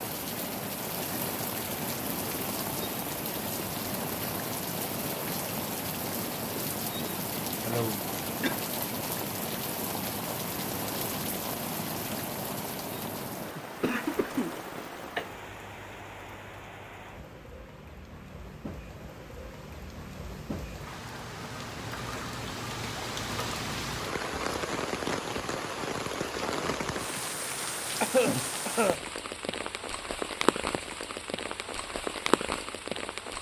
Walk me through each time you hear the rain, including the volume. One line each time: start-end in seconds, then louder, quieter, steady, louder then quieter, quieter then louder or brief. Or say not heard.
0.0-33.3 quieter then louder.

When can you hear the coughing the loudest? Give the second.
28 s.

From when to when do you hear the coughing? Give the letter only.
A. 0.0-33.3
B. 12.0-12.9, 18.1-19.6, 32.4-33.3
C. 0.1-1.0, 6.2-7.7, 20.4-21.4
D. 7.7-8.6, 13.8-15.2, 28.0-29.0
D.